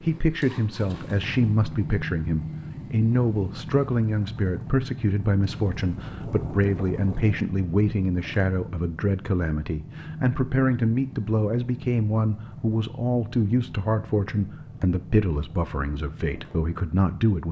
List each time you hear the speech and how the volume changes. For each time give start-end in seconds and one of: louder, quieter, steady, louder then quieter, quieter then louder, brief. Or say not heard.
0.0-17.4 steady.